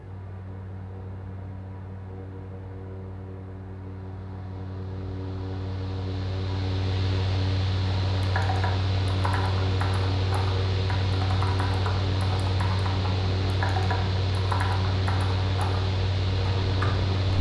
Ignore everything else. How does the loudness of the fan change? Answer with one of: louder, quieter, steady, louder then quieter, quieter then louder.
louder.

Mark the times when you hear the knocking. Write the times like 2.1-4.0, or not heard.
not heard.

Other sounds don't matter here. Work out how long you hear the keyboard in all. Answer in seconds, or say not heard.
9 s.